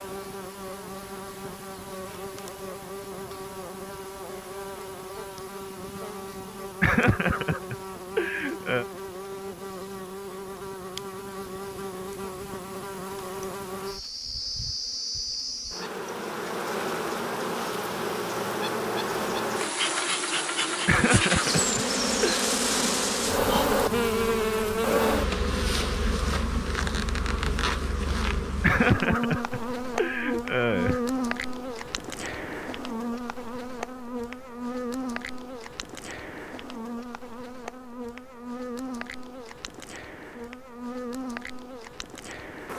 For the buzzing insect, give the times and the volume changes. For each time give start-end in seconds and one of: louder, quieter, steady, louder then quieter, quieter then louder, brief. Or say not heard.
0.0-42.7 louder then quieter.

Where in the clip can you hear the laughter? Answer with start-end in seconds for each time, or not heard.
6.8-8.8, 20.9-22.4, 28.6-31.0.